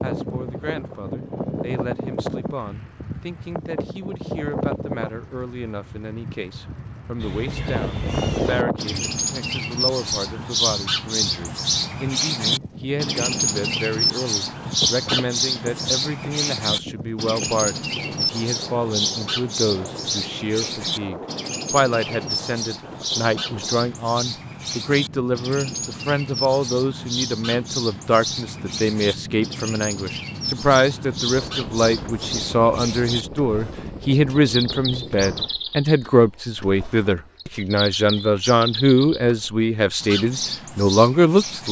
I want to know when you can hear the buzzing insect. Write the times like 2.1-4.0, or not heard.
not heard.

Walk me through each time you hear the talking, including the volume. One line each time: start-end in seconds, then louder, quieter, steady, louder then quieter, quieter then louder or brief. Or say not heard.
0.0-41.6 louder.